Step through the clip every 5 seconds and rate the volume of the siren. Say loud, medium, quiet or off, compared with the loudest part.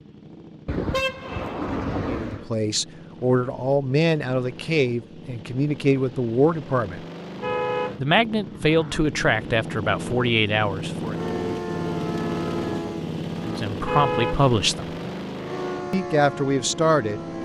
off, off, loud, loud.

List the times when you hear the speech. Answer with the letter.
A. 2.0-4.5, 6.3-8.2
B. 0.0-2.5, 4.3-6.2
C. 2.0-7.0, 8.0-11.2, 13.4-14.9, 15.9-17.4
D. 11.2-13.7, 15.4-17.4
C.